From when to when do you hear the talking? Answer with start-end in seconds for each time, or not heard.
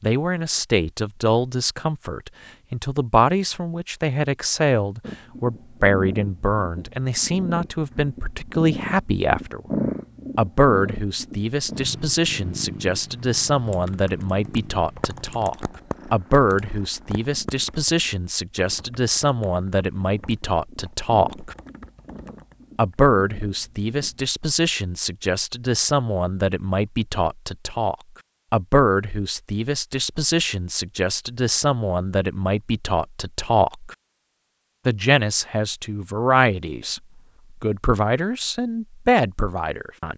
0.0-9.6, 10.3-21.6, 22.8-34.0, 34.9-40.1.